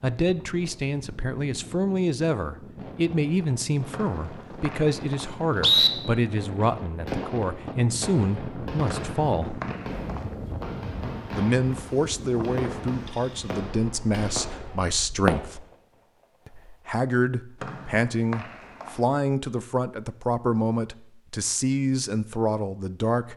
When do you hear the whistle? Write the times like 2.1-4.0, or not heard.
3.9-5.9, 8.9-10.2, 17.6-18.9.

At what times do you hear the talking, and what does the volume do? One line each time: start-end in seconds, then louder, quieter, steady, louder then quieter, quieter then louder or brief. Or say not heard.
0.0-9.6 steady
11.3-15.7 steady
16.4-23.3 steady.